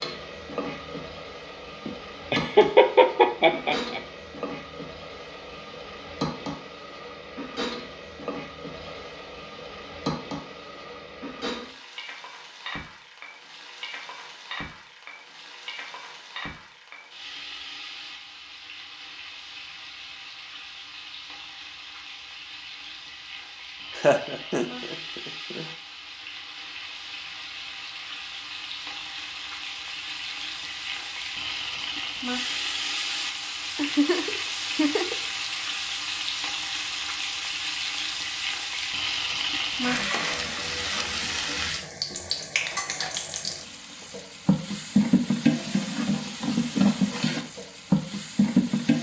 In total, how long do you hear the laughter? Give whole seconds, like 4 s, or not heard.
5 s.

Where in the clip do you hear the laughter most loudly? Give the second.
3 s.